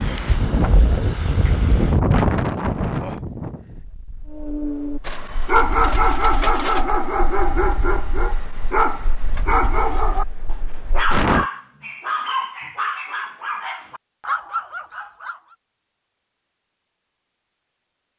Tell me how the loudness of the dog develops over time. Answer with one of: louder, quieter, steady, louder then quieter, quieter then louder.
quieter.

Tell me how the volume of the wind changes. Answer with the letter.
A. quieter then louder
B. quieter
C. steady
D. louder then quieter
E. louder
B.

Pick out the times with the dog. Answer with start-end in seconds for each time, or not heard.
4.3-15.6.